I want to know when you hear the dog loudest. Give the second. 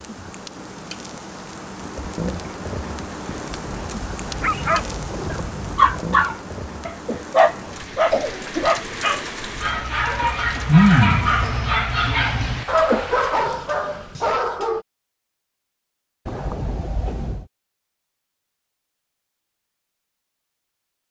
11 s.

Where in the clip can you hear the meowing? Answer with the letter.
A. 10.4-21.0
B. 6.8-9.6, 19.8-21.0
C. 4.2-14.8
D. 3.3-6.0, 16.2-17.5
D.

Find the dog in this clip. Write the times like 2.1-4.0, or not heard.
4.2-14.8.